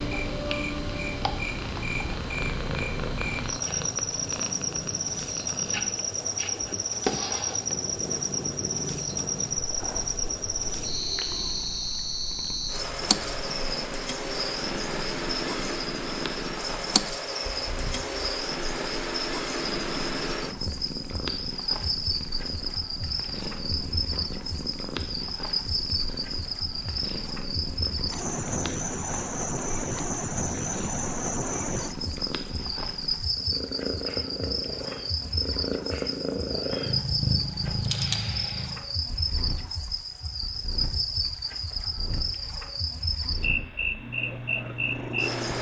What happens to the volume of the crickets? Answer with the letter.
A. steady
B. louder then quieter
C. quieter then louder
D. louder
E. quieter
A.